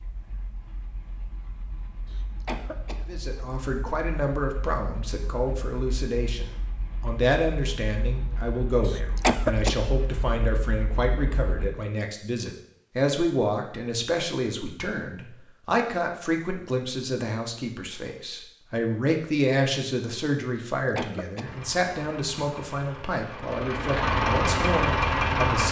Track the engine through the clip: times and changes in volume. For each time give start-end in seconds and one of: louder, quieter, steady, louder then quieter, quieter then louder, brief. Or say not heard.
0.0-11.7 louder
21.4-25.6 louder.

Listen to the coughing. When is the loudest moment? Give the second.
9 s.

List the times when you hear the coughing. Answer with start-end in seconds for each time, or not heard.
2.1-3.0, 8.8-9.8, 20.6-21.4.